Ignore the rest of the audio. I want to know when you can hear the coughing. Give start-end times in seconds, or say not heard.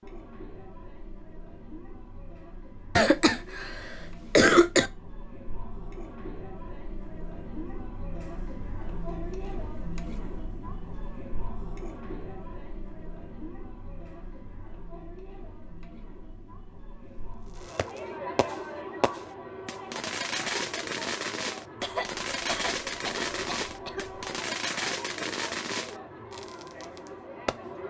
3.0-4.9, 21.8-24.2.